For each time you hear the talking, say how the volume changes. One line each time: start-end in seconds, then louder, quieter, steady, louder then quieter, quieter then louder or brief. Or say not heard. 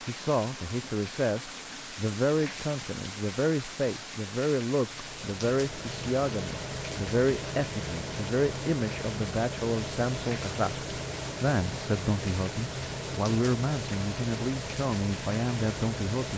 0.1-16.3 steady.